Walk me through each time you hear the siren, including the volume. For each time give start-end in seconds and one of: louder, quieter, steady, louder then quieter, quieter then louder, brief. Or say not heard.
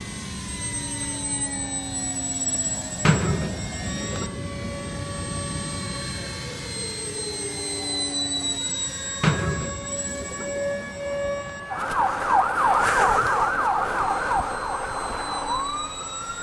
0.0-16.3 louder.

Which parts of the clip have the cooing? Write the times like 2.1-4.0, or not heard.
3.0-4.6, 9.2-11.2.